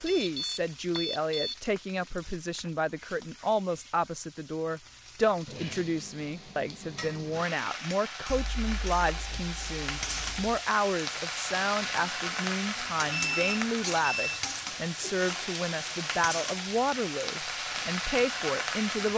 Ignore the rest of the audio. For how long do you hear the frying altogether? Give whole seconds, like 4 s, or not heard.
19 s.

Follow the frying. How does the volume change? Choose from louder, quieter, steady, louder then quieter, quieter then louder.
louder.